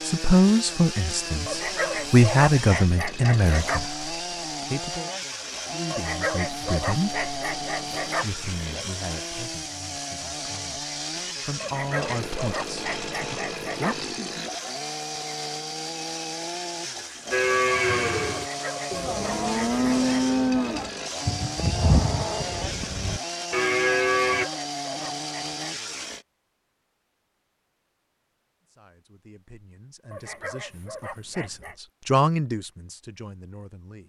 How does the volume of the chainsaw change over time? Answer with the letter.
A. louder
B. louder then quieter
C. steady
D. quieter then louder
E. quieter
C.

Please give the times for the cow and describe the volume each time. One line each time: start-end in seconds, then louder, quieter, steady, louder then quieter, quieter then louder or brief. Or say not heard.
17.3-24.4 steady.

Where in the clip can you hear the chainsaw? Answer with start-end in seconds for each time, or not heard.
0.0-26.2.